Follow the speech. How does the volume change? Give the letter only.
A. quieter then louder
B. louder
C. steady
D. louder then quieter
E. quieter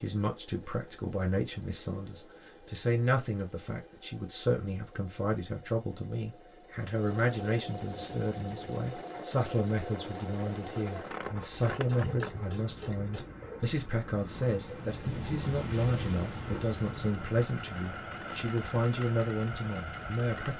C.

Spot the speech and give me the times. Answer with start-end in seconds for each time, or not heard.
0.0-20.5.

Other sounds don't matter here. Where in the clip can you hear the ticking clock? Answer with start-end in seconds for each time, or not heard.
not heard.